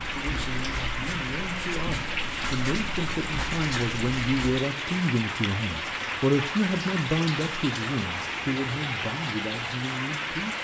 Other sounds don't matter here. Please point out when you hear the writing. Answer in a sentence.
The writing can be heard from 0.0 to 4.6 s.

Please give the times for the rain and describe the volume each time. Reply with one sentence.
You can hear the rain from 0.0 to 10.5 s, at a steady volume.